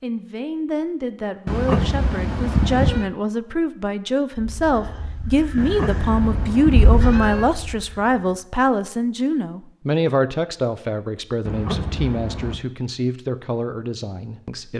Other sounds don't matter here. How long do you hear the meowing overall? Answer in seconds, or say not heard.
5 s.